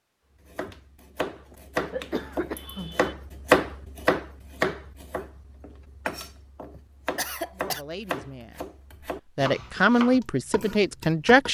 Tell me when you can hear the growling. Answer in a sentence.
The growling can't be heard in this clip.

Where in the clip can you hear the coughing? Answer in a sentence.
You can hear the coughing from 1.9 to 3.1 s and from 6.7 to 7.8 s.